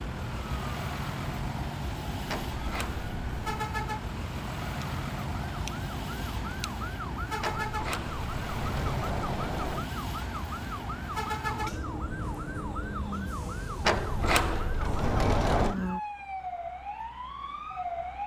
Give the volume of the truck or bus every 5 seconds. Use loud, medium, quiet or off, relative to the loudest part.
loud, loud, loud, off.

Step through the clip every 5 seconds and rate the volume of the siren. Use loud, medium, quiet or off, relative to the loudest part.
medium, loud, loud, loud.